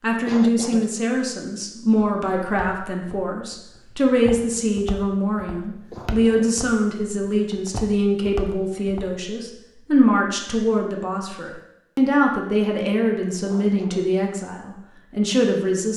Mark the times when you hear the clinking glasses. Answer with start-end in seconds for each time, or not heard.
not heard.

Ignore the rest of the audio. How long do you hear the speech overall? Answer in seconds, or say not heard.
16 s.